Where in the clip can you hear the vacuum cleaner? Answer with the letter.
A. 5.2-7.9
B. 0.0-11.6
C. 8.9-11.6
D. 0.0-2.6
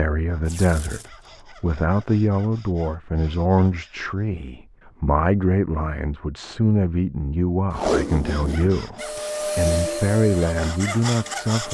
C.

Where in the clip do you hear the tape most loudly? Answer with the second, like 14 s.
8 s.